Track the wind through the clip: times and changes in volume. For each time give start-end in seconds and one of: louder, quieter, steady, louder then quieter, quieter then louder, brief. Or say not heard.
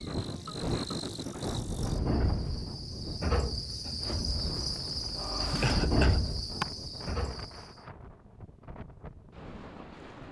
0.0-10.2 quieter.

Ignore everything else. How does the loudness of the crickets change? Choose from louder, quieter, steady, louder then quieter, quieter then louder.
louder.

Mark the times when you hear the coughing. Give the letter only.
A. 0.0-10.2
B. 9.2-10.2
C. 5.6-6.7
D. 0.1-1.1
C.